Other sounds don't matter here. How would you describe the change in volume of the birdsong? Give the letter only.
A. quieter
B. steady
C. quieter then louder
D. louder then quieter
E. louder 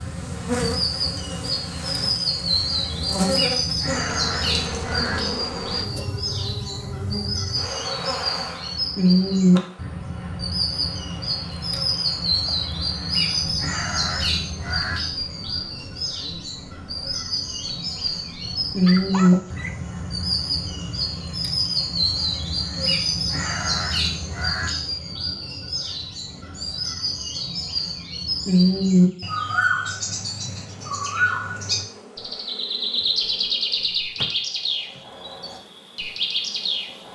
B.